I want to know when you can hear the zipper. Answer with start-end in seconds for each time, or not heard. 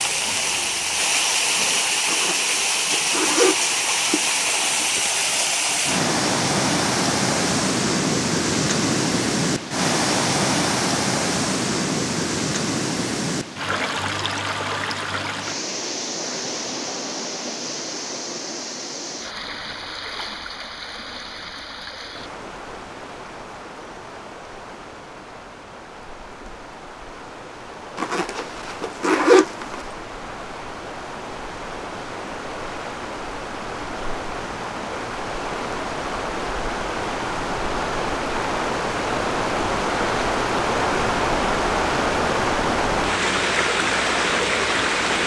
2.0-4.2, 27.9-29.8.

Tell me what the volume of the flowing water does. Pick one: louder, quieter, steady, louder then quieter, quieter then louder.
quieter then louder.